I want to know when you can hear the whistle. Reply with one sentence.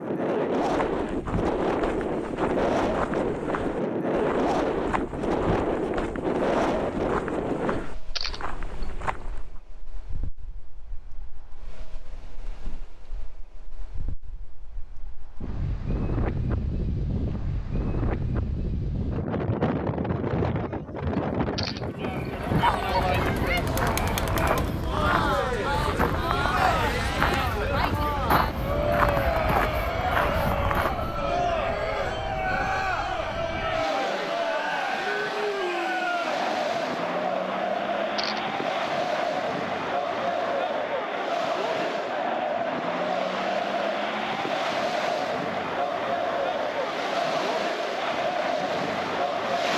The whistle can't be heard in this clip.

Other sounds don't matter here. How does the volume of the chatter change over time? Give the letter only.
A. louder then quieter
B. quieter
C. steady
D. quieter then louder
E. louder
C.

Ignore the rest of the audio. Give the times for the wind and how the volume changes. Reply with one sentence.
You can hear the wind from 0.0 to 49.7 s, getting quieter.